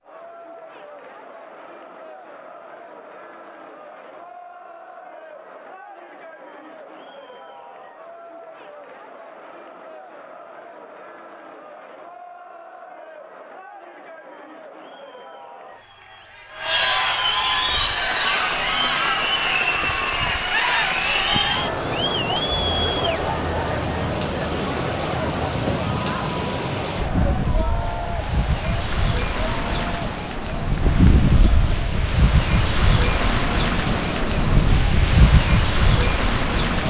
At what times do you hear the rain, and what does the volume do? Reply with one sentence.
You can hear the rain from 17.4 to 36.8 s, getting louder.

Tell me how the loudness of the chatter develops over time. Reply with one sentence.
The loudness of the chatter goes up, then down.